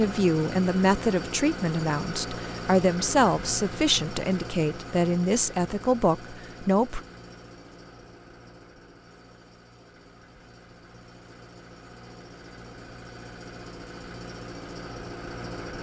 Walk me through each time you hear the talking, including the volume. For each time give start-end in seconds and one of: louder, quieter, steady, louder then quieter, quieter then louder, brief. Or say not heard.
0.0-7.0 steady.